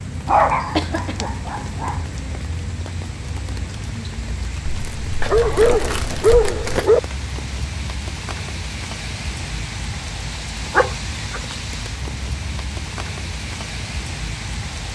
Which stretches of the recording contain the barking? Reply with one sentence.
You can hear the barking from 0.2 to 2.0 s, from 5.2 to 7.0 s and from 10.8 to 11.4 s.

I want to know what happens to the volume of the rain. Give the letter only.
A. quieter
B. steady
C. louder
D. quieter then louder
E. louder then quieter
B.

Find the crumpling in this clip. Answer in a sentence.
You can hear the crumpling from 4.8 to 6.9 s.